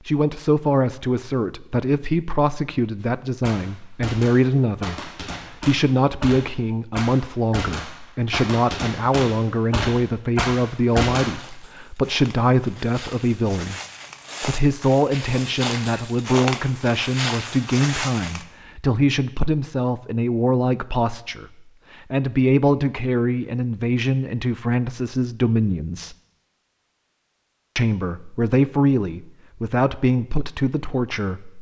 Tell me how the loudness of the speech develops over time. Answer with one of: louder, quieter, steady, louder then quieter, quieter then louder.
steady.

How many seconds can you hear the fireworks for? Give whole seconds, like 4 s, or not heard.
8 s.